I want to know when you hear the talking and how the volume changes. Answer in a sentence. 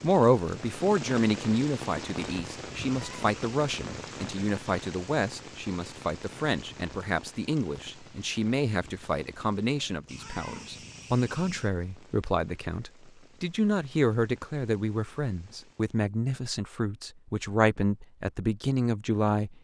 You can hear the talking from 0.0 to 19.5 s, at a steady volume.